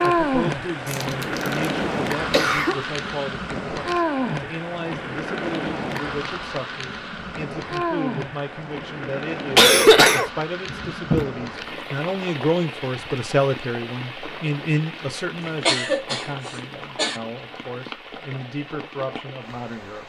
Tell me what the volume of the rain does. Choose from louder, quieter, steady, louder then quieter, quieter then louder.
quieter.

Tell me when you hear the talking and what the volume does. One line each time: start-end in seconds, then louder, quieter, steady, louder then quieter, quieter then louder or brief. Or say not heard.
0.0-20.0 louder then quieter.